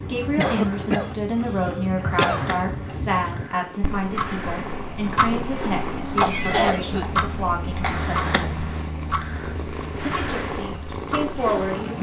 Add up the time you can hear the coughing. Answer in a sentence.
The coughing can be heard for 3 seconds in total.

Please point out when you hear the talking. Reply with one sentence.
You can hear the talking from 0.1 to 8.7 s and from 10.0 to 11.9 s.